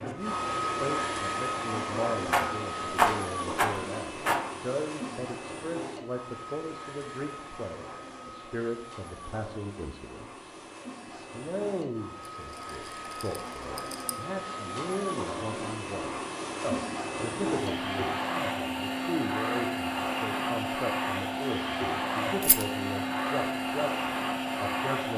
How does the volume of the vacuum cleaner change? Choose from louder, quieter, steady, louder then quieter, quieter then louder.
quieter then louder.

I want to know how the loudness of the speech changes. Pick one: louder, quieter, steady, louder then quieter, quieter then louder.
steady.